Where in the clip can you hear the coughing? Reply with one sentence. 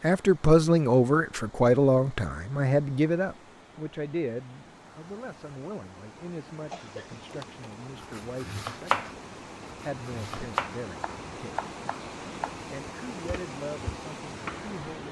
The coughing can be heard from 6.7 to 7.5 s.